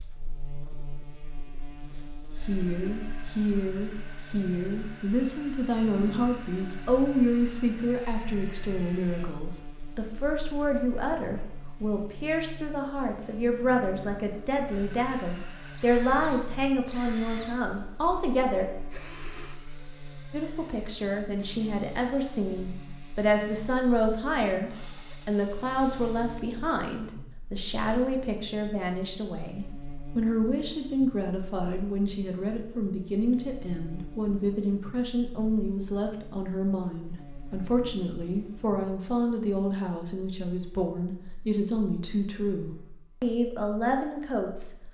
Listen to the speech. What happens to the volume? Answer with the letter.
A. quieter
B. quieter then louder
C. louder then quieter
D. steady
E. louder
D.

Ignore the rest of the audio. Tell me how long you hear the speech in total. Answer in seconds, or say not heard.
41 s.